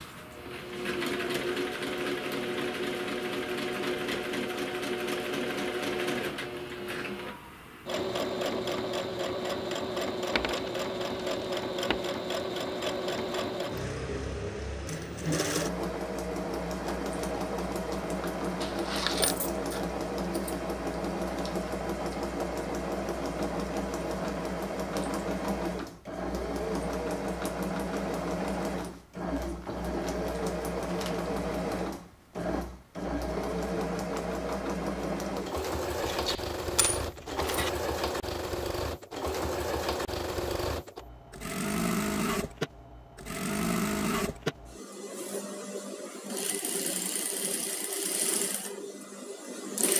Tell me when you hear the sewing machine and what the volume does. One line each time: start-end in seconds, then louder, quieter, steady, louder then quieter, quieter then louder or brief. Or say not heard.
0.0-49.9 steady.